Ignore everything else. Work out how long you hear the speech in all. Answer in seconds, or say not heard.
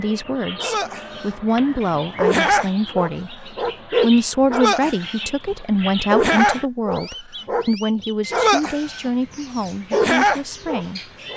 11 s.